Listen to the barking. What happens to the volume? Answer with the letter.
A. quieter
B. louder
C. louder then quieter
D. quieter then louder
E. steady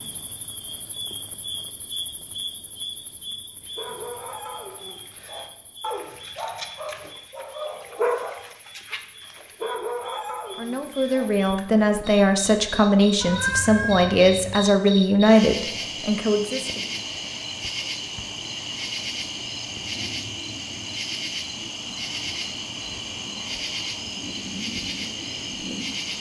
C.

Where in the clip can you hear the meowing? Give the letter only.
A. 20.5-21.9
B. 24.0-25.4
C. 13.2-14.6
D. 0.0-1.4
C.